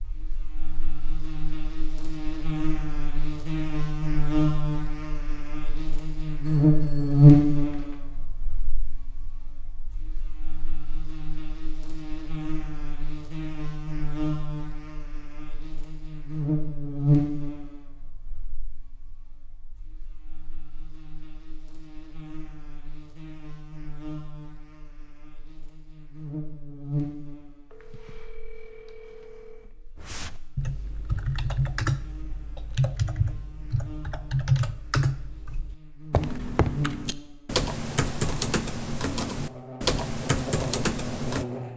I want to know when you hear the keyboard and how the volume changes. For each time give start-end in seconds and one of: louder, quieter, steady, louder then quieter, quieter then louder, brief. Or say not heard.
29.9-41.5 steady.